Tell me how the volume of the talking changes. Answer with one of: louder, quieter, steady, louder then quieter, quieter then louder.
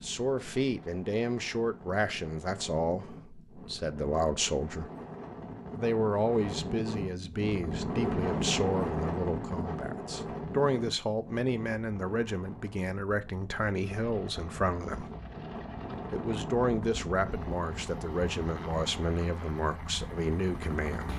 steady.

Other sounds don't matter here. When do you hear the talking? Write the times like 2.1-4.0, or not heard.
0.0-4.9, 5.8-15.1, 16.1-21.1.